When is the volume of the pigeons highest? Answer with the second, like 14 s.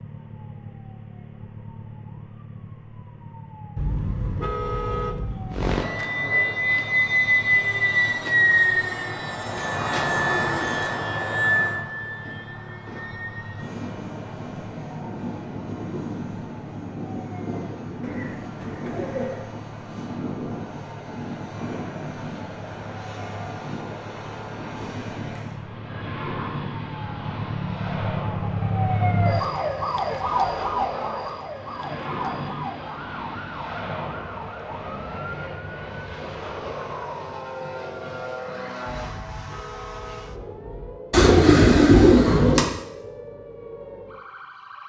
42 s.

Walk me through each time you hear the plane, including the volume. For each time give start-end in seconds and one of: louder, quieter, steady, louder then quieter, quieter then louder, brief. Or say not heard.
5.5-39.2 quieter.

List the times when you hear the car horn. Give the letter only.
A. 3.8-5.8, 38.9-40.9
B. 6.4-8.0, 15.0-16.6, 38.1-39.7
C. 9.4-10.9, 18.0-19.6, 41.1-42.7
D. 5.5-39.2
A.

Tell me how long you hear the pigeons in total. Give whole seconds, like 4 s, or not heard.
5 s.